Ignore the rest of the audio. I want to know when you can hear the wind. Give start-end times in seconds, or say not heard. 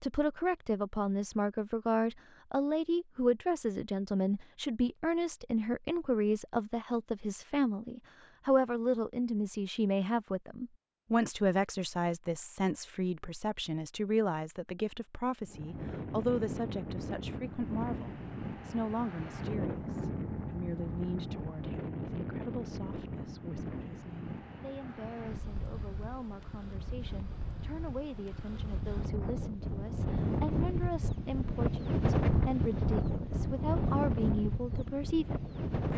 15.4-35.9.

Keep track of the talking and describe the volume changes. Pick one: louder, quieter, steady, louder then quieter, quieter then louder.
quieter then louder.